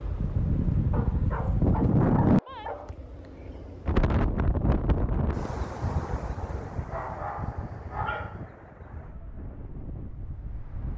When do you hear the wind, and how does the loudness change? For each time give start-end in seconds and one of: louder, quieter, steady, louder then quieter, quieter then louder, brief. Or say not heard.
0.0-10.9 quieter.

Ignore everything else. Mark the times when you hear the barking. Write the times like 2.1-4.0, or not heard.
0.9-3.0, 6.9-8.4.